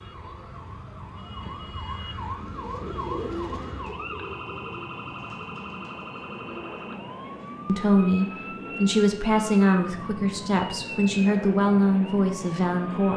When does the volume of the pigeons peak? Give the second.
3 s.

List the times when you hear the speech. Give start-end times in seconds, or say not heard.
7.7-13.1.